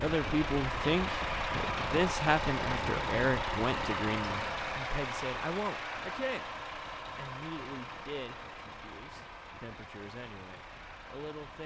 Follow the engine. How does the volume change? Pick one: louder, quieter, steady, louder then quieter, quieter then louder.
quieter.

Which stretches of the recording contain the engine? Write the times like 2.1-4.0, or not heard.
0.0-11.6.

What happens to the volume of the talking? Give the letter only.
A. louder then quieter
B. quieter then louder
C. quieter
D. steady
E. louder
C.